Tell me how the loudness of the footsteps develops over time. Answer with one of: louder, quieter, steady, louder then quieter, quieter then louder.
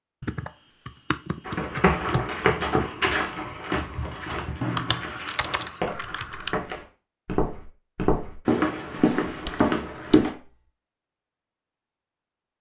quieter then louder.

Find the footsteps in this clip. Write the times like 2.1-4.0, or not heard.
1.4-10.3.